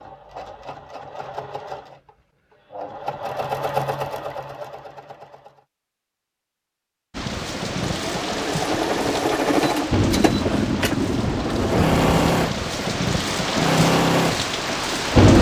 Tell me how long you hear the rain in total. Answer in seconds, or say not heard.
8 s.